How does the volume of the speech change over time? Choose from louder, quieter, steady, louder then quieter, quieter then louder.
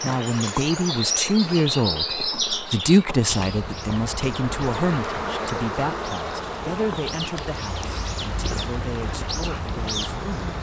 quieter.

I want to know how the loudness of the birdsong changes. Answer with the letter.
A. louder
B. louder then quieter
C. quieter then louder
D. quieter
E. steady
C.